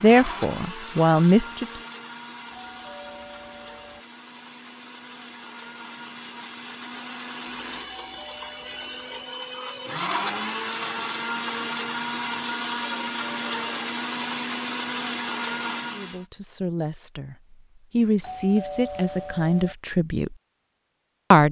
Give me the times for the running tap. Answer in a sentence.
The running tap can't be heard in this clip.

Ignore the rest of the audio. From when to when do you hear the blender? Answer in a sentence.
The blender can be heard from 0.0 to 16.2 s.